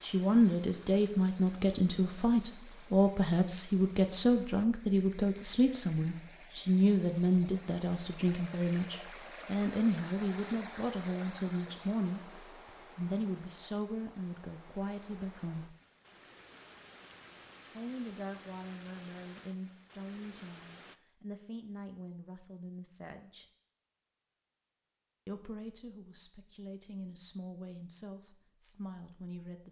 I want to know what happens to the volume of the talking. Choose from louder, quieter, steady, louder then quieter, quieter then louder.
quieter.